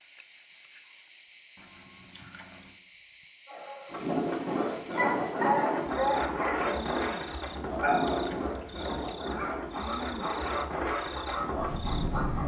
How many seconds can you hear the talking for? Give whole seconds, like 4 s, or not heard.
not heard.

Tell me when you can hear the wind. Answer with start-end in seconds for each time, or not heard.
3.9-12.4.